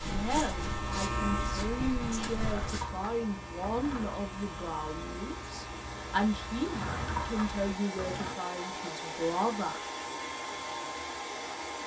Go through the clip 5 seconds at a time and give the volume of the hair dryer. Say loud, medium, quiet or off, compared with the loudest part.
medium, loud, loud.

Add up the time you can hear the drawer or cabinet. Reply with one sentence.
The drawer or cabinet can be heard for 4 seconds in total.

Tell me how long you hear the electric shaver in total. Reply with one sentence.
You can hear the electric shaver for 8 seconds altogether.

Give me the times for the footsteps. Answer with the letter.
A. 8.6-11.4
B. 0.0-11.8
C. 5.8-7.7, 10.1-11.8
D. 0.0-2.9
D.